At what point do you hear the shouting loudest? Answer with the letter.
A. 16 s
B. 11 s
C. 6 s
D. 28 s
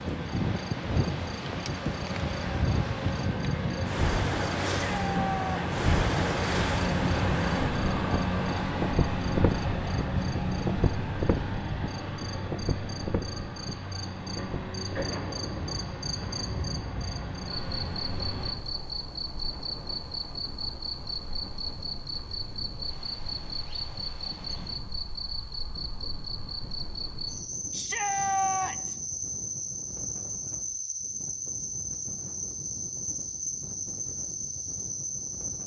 D.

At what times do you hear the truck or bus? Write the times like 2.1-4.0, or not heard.
0.0-18.6.